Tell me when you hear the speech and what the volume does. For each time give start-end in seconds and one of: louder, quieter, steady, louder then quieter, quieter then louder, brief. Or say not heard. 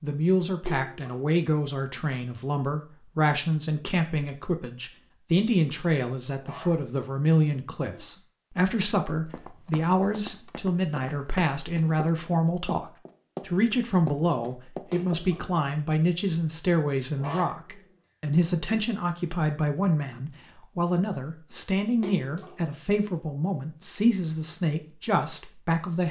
0.0-26.0 steady.